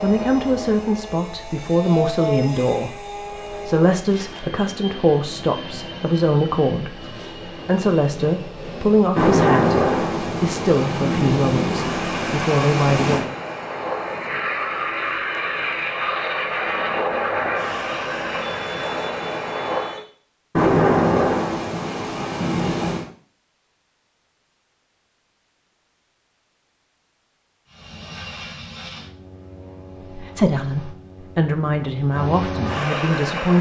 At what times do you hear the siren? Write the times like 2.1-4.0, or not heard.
not heard.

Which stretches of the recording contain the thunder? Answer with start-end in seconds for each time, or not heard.
9.2-13.2, 20.6-23.1.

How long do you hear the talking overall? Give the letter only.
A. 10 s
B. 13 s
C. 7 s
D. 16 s
D.